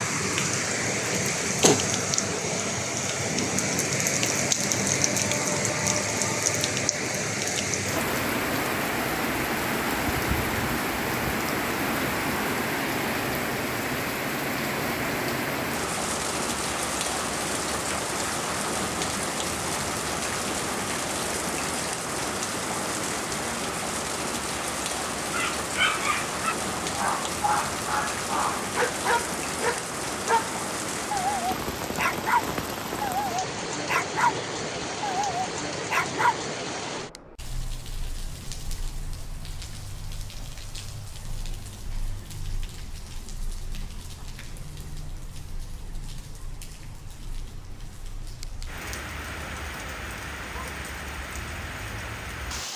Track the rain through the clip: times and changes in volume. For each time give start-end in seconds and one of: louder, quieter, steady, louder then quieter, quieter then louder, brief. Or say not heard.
0.0-52.7 quieter.